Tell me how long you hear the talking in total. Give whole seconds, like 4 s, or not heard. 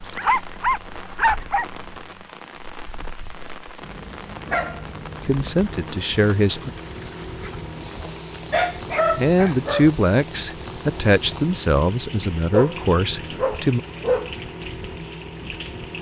6 s.